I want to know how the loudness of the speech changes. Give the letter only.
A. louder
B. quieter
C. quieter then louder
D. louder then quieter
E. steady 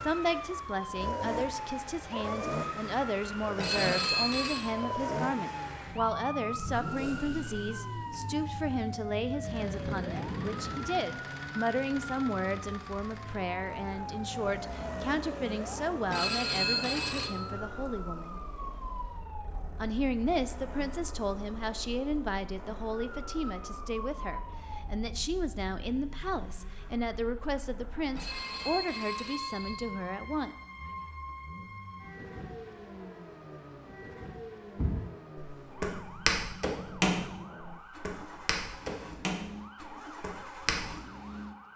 E.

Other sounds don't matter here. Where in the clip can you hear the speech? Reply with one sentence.
The speech can be heard from 0.0 to 18.4 s and from 19.8 to 30.6 s.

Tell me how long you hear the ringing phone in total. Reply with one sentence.
The ringing phone can be heard for 4 seconds in total.